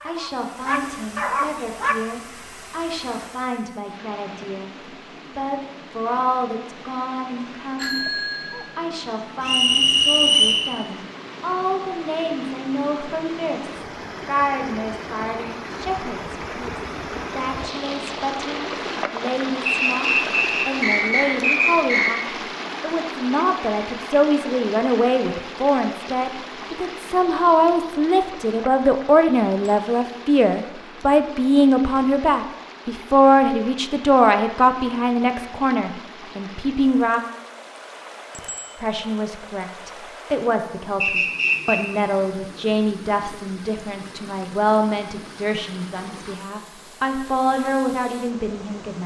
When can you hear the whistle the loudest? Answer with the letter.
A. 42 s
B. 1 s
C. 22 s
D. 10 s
D.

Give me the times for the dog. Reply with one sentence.
The dog can be heard from 0.0 to 2.0 s.